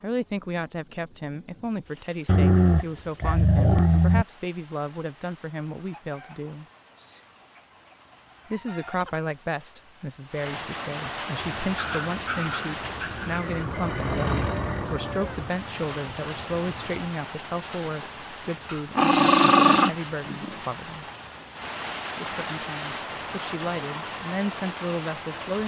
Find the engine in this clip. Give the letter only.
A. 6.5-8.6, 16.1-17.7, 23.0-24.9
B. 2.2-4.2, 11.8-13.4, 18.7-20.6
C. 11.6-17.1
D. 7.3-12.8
C.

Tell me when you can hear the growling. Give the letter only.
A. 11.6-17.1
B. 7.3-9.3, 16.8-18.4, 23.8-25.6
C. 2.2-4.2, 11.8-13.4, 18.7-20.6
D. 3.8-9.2
C.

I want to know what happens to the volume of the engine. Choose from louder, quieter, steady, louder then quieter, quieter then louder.
louder then quieter.